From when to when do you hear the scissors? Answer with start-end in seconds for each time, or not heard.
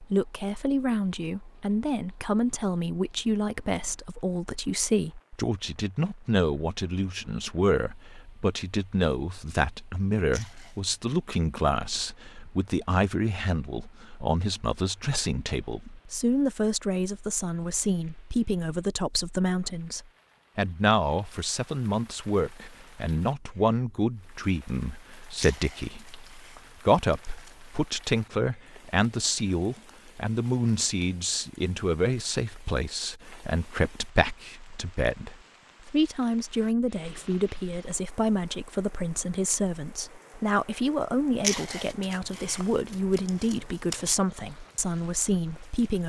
10.3-10.8, 25.4-27.6, 41.4-44.1.